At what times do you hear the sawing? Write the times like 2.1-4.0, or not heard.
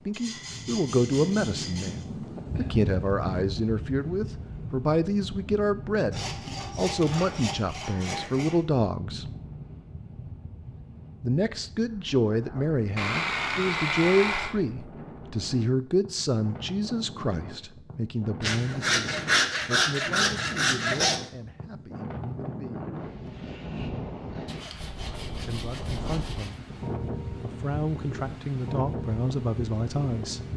0.1-2.0, 6.1-8.6, 12.9-14.6, 18.4-21.2, 24.4-26.6.